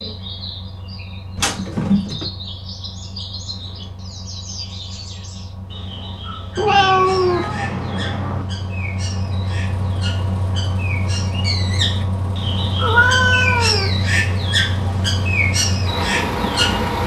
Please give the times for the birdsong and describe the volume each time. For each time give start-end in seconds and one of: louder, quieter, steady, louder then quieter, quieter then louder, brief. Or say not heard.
0.0-17.0 louder.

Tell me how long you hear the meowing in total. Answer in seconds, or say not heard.
4 s.